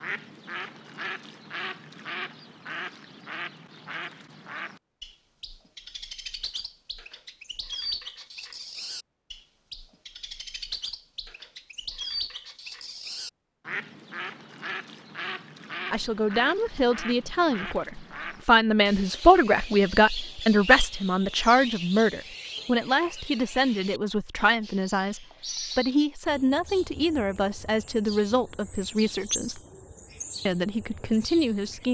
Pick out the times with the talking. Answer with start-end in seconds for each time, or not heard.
15.9-29.6, 30.4-31.8.